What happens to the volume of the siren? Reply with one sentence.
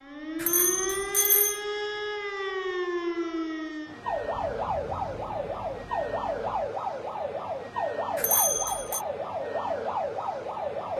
The loudness of the siren stays about the same.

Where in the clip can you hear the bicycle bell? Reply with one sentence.
You can hear the bicycle bell from 0.3 to 1.6 s and from 8.2 to 9.0 s.